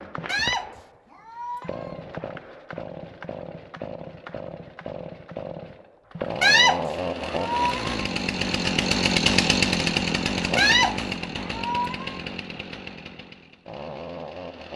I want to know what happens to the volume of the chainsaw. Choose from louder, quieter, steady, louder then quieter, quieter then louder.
louder then quieter.